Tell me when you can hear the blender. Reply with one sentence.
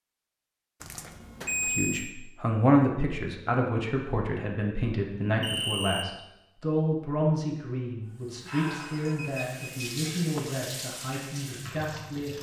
The blender can't be heard in this clip.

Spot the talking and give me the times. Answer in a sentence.
You can hear the talking from 1.6 to 12.3 s.